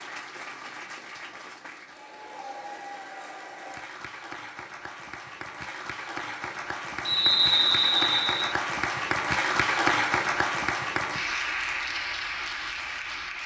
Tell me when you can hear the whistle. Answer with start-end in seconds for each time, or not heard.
7.0-8.6.